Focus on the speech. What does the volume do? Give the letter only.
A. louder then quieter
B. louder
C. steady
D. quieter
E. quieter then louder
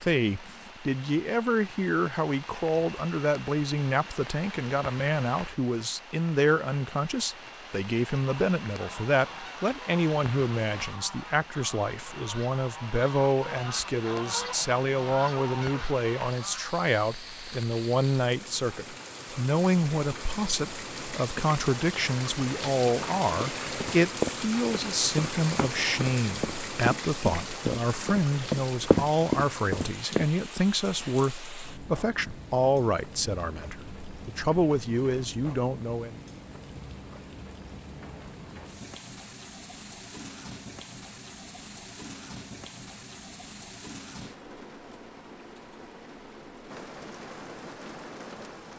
C.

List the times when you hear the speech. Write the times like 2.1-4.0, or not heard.
0.0-36.1.